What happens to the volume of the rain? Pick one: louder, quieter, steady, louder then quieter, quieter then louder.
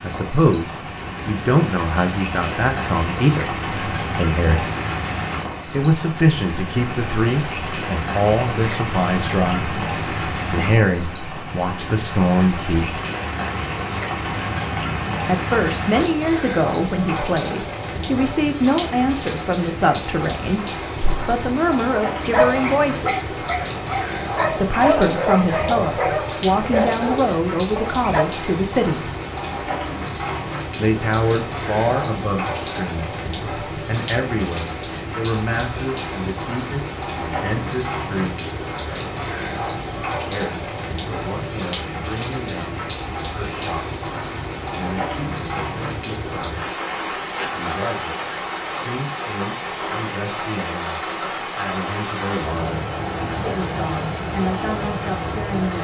steady.